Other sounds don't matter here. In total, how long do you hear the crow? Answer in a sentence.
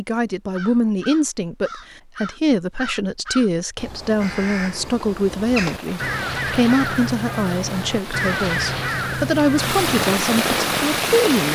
The crow can be heard for 10 seconds in total.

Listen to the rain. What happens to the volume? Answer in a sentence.
The loudness of the rain goes up.